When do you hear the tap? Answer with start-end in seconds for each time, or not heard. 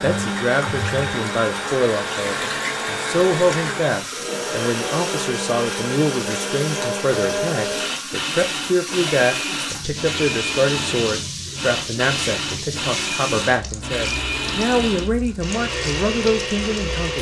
0.0-17.1.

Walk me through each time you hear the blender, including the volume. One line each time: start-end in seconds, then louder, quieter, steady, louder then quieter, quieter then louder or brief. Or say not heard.
0.0-17.1 steady.